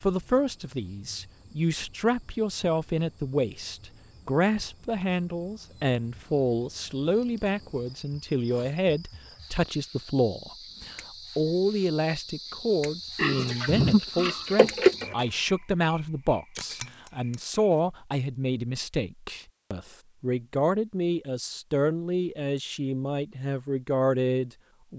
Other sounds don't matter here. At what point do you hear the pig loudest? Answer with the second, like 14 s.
15 s.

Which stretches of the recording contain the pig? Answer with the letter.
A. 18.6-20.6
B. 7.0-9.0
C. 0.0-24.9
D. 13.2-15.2
D.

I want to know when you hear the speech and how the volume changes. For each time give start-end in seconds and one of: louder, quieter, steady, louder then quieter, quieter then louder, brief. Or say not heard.
0.0-24.9 steady.